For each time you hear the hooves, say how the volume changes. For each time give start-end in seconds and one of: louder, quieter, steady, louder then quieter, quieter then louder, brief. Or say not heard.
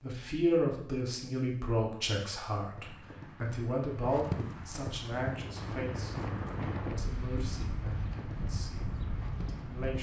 2.8-9.9 quieter.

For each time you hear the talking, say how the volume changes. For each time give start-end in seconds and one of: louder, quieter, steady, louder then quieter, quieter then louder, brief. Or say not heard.
0.0-9.9 quieter.